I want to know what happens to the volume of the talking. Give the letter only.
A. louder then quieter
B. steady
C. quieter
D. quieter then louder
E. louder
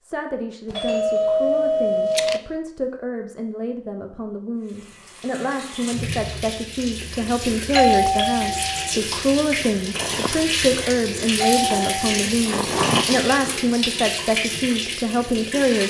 E.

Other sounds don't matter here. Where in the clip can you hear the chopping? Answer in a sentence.
You can't hear the chopping here.